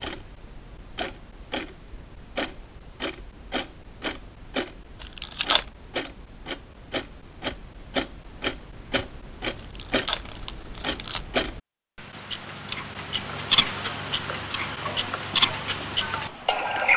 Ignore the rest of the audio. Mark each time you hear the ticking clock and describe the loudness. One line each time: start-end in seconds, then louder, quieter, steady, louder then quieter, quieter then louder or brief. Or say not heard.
0.0-16.9 louder.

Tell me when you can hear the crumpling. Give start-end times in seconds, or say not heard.
5.0-5.7, 9.6-11.2.